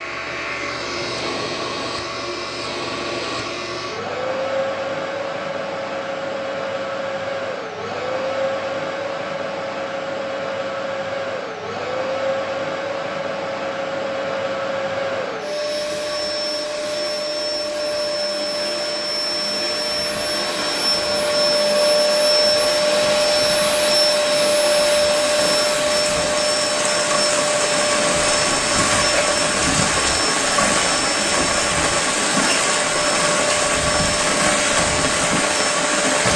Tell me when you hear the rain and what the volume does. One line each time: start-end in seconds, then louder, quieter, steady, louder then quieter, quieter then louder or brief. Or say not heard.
15.7-36.3 louder.